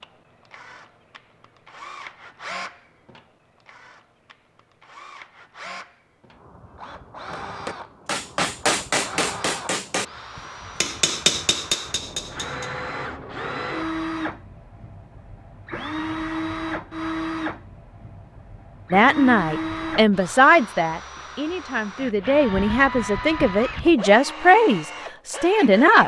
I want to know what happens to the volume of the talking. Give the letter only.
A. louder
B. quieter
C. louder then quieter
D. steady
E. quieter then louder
E.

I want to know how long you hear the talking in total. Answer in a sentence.
The talking can be heard for 7 seconds in total.